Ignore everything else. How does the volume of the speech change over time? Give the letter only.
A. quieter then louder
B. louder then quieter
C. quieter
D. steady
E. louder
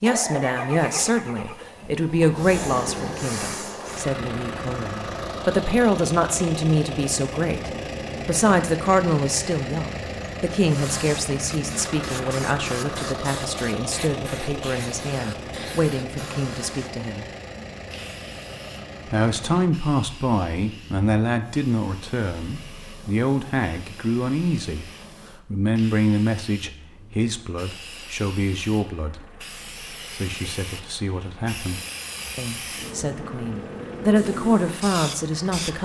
D.